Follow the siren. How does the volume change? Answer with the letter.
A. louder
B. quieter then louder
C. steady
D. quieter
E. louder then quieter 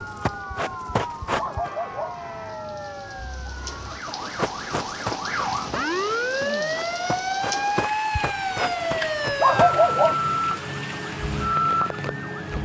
A.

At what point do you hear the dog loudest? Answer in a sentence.
The volume of the dog peaks at 10 seconds.